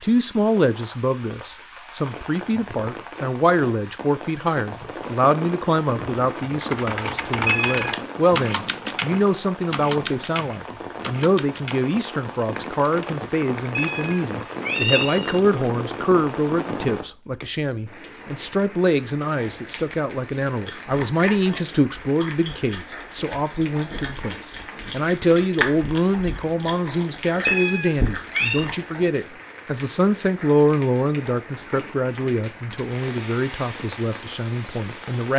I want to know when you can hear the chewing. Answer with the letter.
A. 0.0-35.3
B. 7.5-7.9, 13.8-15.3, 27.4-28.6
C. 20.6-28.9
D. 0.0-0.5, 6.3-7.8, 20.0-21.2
C.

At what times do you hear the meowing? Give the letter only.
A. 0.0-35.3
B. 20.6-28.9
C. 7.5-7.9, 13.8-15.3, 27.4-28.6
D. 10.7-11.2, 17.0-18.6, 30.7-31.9
C.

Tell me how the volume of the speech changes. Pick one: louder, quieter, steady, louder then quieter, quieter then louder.
steady.